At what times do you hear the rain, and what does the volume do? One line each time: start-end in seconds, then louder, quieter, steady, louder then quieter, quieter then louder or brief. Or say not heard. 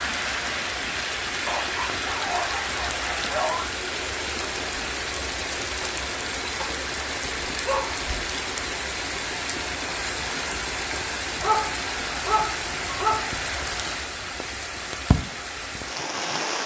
0.0-16.6 steady.